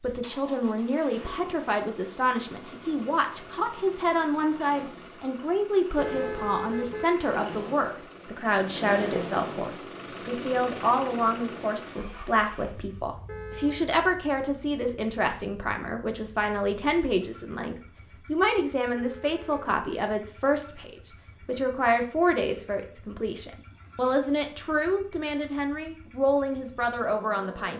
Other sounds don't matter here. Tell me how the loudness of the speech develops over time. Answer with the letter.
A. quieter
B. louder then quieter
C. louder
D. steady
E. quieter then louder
D.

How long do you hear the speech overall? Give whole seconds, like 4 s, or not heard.
28 s.